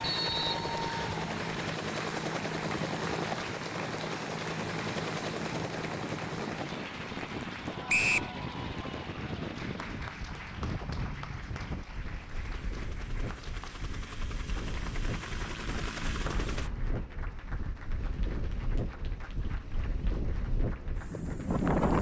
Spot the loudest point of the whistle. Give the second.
8 s.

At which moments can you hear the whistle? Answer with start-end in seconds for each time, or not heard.
0.0-1.1, 7.8-8.3, 16.2-16.8.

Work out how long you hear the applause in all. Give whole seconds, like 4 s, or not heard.
22 s.